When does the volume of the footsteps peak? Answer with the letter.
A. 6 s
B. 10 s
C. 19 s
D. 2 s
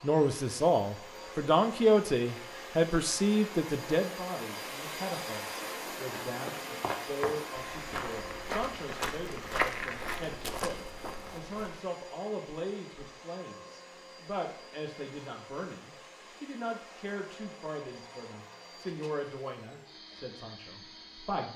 B.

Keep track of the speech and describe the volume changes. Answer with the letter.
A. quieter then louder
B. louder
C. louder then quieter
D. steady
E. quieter
E.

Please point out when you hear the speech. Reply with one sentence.
The speech can be heard from 0.0 to 21.5 s.